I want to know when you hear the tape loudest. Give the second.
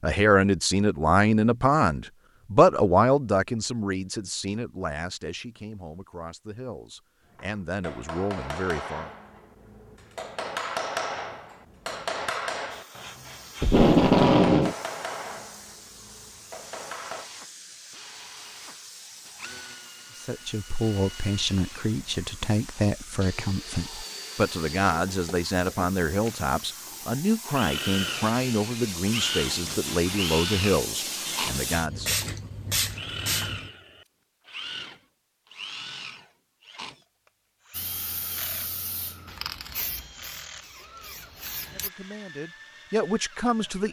14 s.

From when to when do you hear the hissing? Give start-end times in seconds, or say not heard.
12.7-33.7, 37.7-41.9.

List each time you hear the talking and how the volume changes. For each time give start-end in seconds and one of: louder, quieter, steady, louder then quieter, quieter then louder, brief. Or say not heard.
0.0-9.1 quieter then louder
20.1-32.1 steady
41.7-43.8 brief.